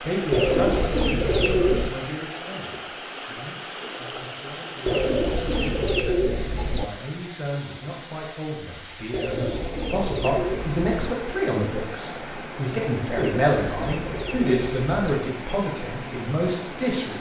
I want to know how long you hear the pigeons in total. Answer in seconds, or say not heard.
8 s.